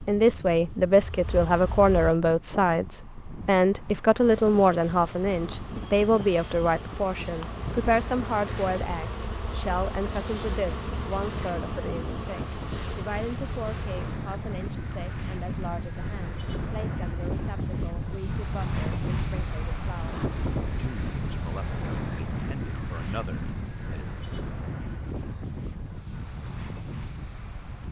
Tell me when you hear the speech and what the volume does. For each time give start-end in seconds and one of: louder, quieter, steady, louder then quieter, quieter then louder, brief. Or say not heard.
0.0-24.1 quieter.